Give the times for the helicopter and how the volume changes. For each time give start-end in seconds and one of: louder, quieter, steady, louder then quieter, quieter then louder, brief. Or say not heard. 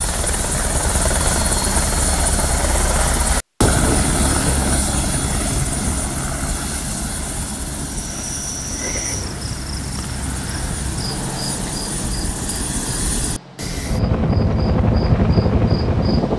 0.0-16.3 quieter then louder.